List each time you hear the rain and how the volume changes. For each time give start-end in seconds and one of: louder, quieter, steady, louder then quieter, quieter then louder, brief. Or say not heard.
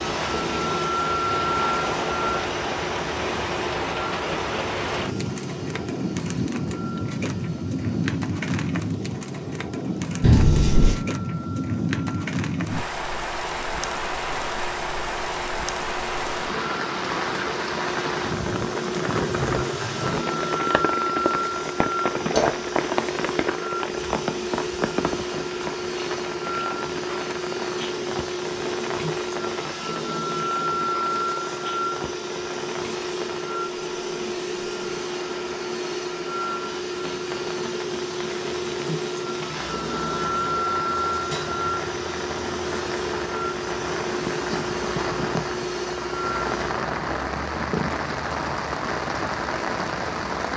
0.0-50.5 quieter then louder.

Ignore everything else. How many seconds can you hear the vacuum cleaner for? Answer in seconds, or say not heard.
47 s.